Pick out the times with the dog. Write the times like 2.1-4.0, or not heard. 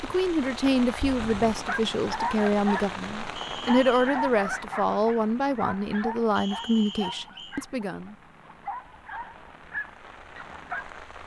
1.5-10.8.